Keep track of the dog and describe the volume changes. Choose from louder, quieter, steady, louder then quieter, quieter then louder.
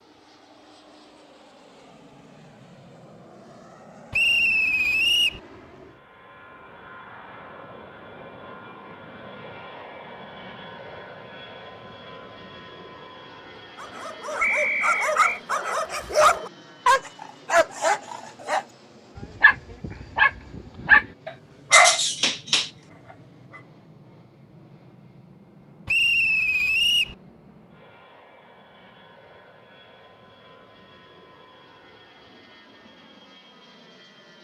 louder.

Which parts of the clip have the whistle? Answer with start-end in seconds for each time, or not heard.
4.1-5.4, 14.4-15.4, 25.9-27.1.